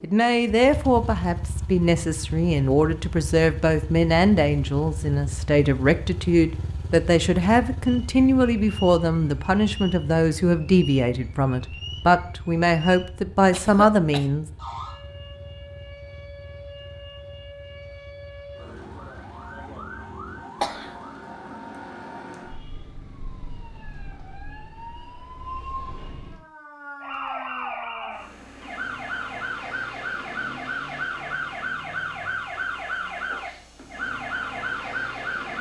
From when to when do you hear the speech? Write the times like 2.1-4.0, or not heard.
0.0-14.5.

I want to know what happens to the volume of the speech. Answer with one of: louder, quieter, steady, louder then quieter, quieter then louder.
steady.